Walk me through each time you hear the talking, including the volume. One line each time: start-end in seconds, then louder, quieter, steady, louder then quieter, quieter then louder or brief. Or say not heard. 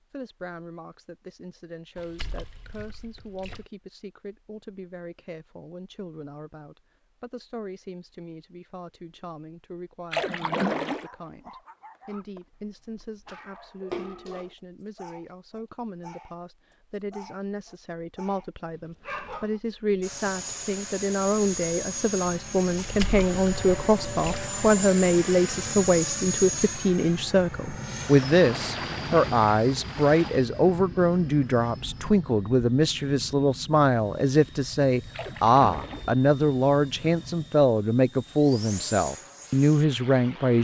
0.1-40.5 louder.